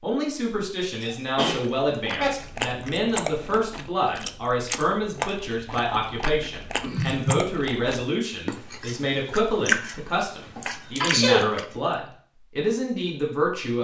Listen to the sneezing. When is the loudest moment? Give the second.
11 s.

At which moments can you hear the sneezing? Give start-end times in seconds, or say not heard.
1.0-2.3, 6.8-7.5, 10.6-11.4.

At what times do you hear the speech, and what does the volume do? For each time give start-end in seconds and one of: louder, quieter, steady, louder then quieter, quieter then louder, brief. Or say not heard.
0.0-13.7 steady.